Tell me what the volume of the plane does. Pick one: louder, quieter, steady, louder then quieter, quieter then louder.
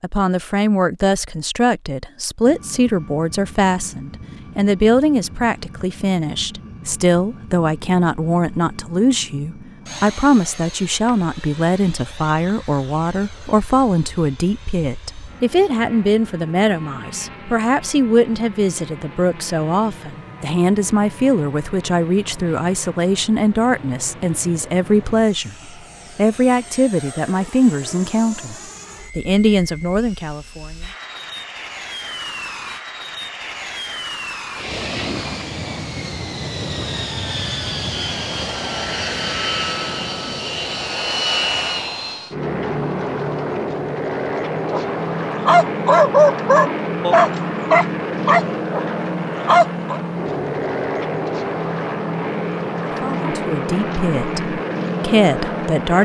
louder.